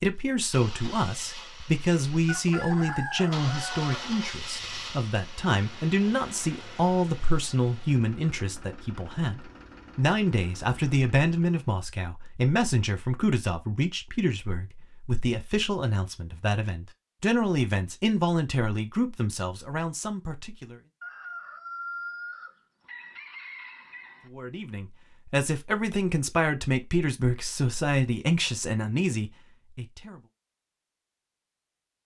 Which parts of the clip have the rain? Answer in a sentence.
You can't hear the rain here.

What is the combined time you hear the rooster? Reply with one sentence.
You can hear the rooster for 5 seconds altogether.